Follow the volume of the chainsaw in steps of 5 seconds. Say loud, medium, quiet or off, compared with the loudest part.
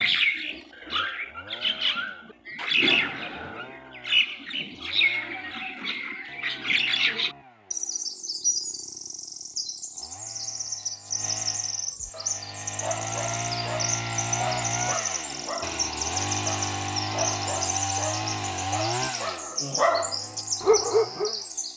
quiet, quiet, loud, loud, quiet.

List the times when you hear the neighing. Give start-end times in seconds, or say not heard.
not heard.